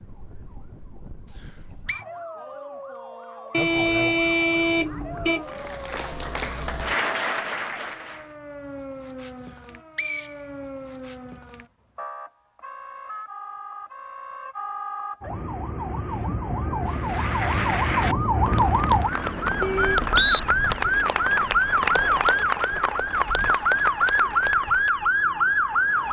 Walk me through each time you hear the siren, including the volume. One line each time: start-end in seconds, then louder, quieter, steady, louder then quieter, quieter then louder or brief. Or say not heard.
0.0-26.0 louder.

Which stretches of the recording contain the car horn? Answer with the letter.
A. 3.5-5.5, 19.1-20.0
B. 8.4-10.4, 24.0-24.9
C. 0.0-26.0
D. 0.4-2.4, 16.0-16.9
A.